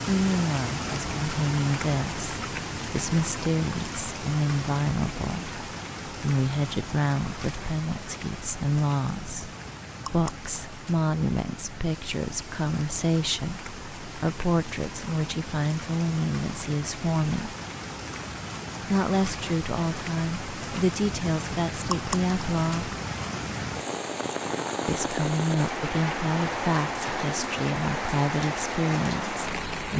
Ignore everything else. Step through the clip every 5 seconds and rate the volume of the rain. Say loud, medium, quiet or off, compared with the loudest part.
loud, medium, medium, medium, loud, loud.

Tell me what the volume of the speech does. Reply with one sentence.
The volume of the speech stays about the same.